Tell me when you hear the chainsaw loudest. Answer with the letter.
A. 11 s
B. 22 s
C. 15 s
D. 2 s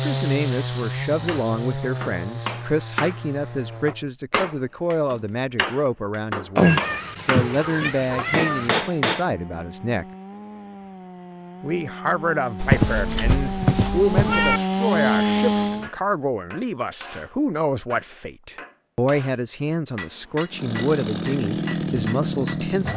C.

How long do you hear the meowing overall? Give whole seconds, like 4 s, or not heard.
4 s.